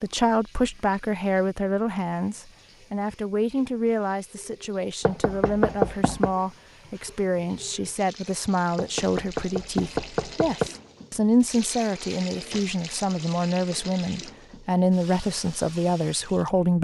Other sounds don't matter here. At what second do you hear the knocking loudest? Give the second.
6 s.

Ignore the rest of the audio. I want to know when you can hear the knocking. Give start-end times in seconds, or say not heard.
5.0-6.3, 8.8-10.7.